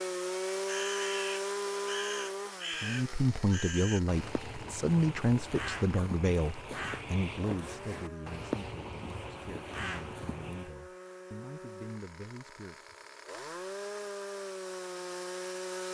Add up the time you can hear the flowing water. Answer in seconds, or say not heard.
not heard.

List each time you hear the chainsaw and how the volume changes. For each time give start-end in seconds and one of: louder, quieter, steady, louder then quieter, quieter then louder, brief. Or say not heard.
0.0-15.8 quieter then louder.